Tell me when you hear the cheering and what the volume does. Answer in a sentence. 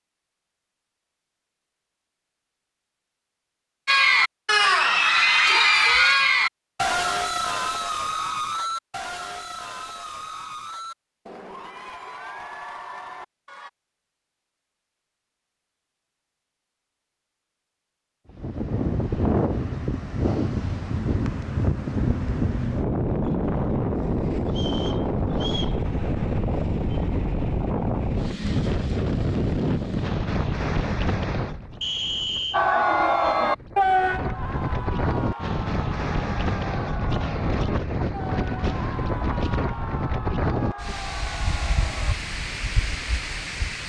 The cheering can be heard from 3.9 to 13.7 s, getting quieter; and from 32.5 to 42.1 s, getting quieter.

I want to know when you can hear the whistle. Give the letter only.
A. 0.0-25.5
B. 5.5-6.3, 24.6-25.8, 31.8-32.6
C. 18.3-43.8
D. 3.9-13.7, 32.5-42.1
B.